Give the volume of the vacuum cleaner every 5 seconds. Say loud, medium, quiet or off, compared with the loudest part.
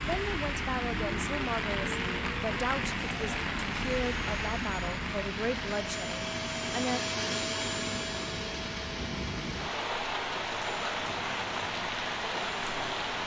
medium, loud, medium.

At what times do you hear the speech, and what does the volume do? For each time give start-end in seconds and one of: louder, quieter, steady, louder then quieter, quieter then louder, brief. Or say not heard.
0.0-7.0 steady.